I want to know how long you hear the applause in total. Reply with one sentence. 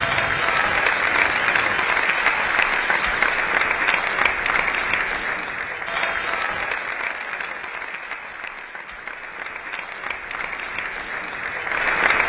You can hear the applause for 12 seconds altogether.